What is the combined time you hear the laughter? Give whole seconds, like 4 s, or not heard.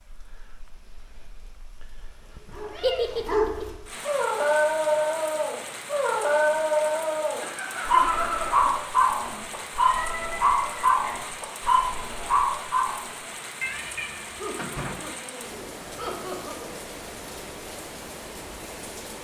5 s.